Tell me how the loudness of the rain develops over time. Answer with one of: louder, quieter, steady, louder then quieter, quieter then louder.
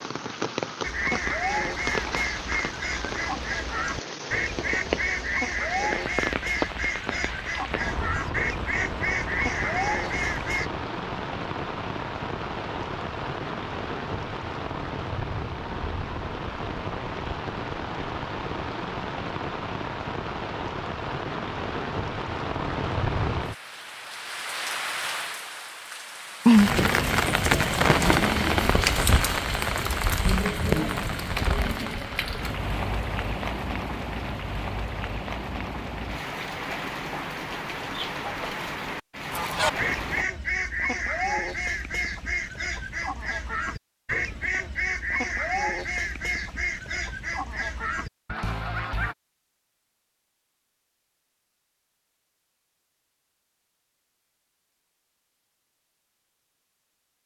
louder then quieter.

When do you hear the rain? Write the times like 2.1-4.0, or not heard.
0.0-40.2.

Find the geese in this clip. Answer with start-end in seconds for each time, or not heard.
0.8-10.7, 39.3-49.1.